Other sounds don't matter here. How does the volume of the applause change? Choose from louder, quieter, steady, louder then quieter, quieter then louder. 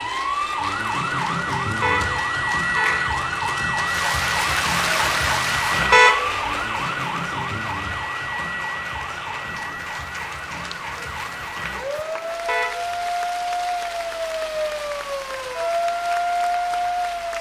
louder then quieter.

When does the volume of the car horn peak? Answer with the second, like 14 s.
6 s.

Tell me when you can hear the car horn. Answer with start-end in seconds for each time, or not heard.
1.8-3.1, 5.9-6.9, 12.4-12.9.